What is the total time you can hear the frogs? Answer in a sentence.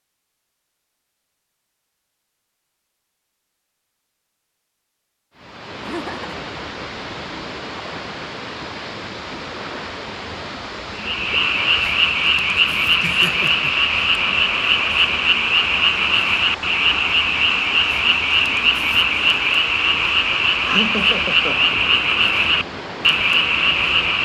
You can hear the frogs for 13 seconds altogether.